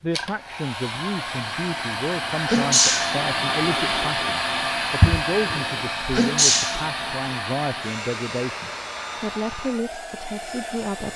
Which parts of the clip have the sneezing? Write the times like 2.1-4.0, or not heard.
2.5-3.1, 6.1-6.8.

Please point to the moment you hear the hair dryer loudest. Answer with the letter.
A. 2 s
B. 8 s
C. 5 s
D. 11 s
C.